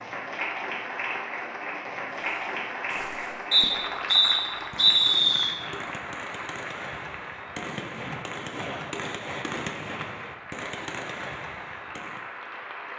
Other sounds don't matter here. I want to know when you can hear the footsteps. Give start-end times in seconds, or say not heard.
not heard.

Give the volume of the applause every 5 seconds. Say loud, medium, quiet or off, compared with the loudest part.
loud, medium, medium.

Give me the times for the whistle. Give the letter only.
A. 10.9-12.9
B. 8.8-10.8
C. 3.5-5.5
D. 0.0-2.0
C.